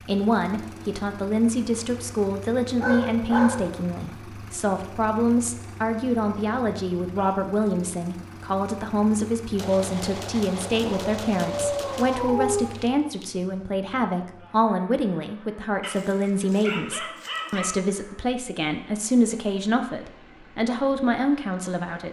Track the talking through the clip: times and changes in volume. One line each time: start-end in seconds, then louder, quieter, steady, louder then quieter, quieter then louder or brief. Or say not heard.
0.1-22.0 steady.